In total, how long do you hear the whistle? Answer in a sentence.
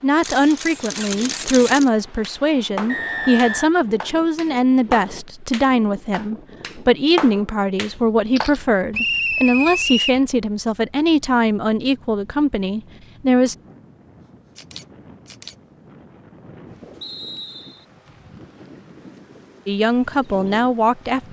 The whistle can be heard for 3 seconds in total.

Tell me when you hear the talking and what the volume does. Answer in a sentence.
The talking can be heard from 0.0 to 13.6 s, at a steady volume; and briefly from 19.6 to 21.2 s.